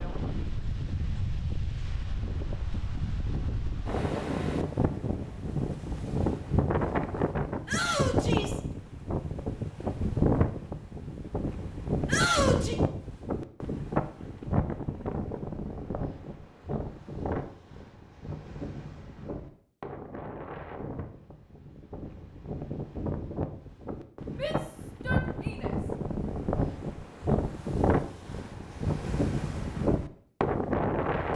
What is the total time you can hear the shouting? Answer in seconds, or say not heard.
3 s.